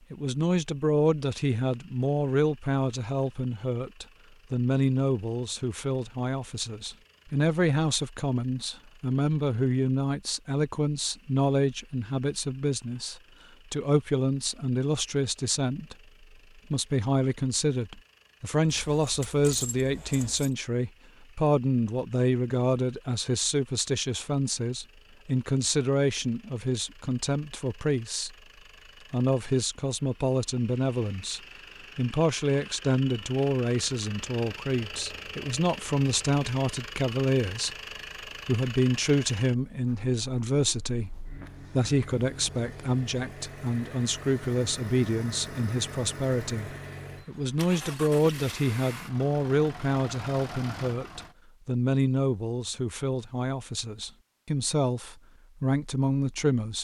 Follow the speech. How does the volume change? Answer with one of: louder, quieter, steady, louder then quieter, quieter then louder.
steady.